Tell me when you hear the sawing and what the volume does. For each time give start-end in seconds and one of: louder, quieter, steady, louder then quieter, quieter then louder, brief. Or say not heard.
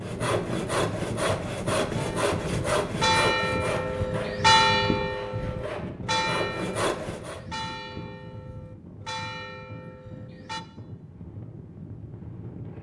0.0-7.4 quieter then louder.